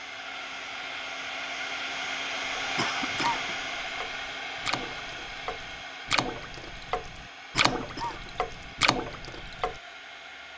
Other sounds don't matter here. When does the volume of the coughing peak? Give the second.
3 s.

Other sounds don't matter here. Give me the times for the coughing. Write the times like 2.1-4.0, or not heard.
2.8-3.5, 7.5-8.3.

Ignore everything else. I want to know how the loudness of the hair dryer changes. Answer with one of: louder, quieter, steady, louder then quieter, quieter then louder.
quieter.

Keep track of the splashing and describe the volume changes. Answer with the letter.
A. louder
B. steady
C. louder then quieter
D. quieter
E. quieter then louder
A.